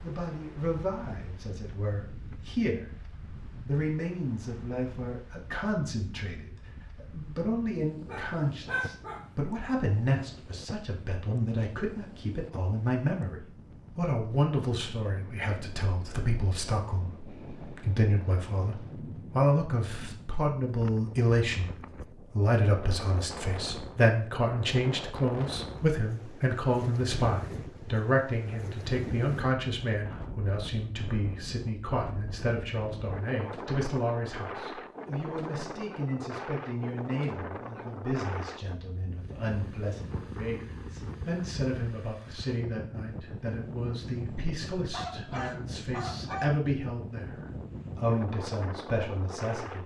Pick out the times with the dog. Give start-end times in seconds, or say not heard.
8.1-9.2, 44.9-46.5.